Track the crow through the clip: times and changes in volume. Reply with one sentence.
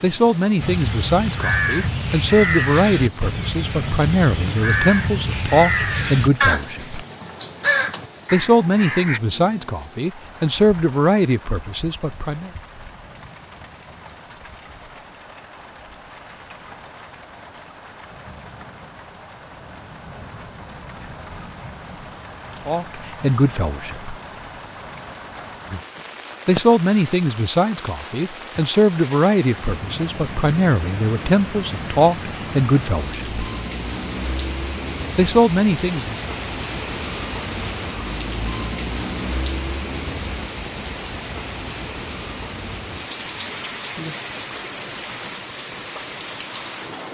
The crow can be heard from 0.6 to 9.2 s, at a steady volume.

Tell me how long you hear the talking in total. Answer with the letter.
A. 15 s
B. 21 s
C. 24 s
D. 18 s
B.